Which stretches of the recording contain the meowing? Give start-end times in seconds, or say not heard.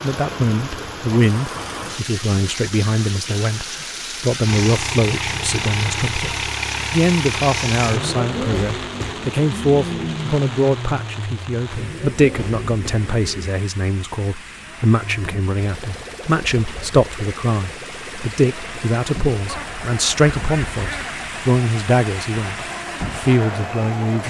not heard.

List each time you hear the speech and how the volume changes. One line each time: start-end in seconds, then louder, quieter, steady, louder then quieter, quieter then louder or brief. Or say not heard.
0.0-24.2 steady.